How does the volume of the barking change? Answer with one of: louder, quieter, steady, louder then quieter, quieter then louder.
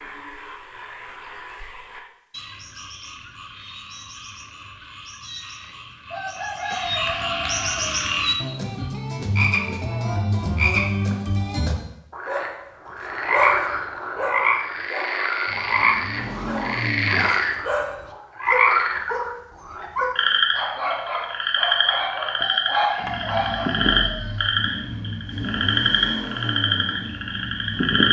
quieter then louder.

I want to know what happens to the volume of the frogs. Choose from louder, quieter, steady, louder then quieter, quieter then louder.
louder.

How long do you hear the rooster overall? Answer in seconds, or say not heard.
5 s.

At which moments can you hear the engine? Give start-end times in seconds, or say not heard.
15.4-17.3, 23.0-27.9.